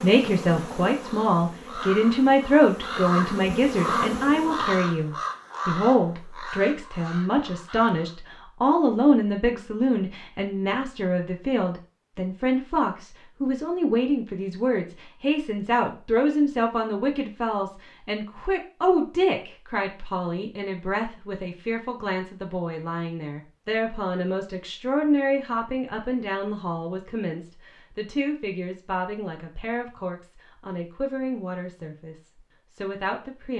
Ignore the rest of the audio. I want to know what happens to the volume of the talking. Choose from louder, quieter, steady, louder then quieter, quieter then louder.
quieter.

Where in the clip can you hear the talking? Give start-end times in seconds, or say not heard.
0.0-33.5.